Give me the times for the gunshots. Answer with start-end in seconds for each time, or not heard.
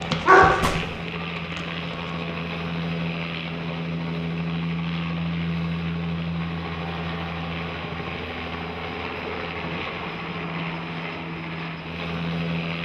0.6-1.0.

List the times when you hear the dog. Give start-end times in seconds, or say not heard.
0.0-2.1.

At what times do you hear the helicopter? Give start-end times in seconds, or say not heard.
0.0-12.8.